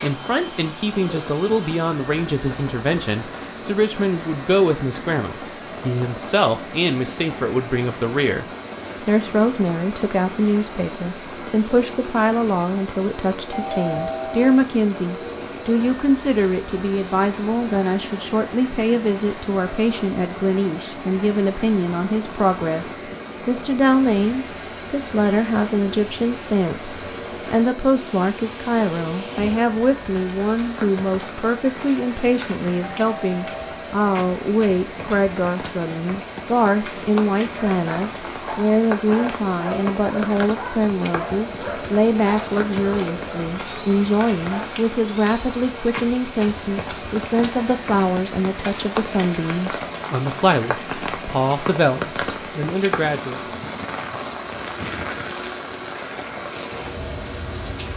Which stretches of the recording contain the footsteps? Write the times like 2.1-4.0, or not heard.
not heard.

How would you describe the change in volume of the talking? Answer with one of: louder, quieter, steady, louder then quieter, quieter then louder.
steady.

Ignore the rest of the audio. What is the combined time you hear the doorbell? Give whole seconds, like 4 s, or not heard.
2 s.